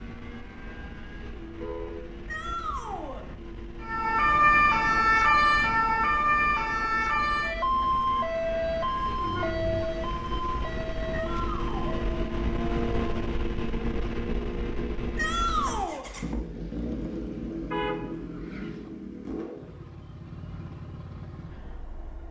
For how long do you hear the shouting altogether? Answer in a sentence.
The shouting can be heard for 3 seconds in total.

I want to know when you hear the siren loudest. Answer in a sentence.
The volume of the siren peaks at 5 seconds.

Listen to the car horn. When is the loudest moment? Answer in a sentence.
The volume of the car horn peaks at 18 seconds.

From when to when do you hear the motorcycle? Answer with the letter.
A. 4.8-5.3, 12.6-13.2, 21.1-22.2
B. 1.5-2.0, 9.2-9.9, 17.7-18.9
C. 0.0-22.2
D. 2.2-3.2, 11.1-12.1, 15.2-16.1
C.